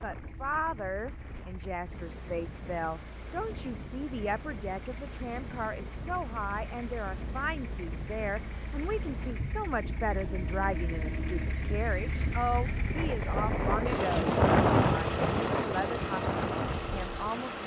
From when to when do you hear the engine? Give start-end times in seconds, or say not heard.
0.0-17.6.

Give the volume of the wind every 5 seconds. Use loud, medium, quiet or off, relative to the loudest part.
quiet, quiet, loud, medium.